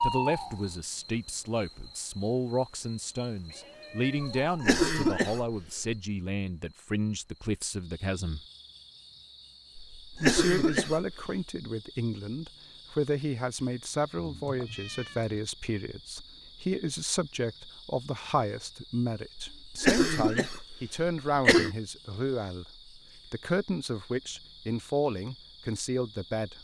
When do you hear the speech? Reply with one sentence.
You can hear the speech from 0.0 to 8.4 s and from 10.2 to 26.5 s.